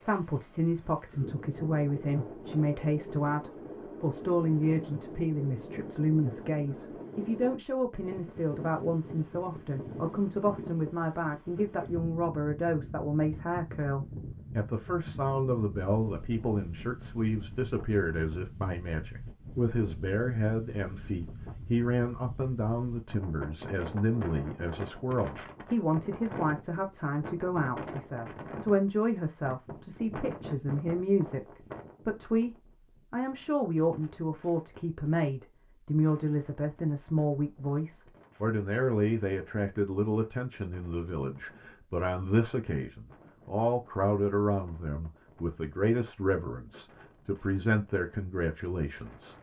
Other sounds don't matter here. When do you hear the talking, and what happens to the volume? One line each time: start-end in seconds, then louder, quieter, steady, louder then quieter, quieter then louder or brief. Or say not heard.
0.0-49.3 steady.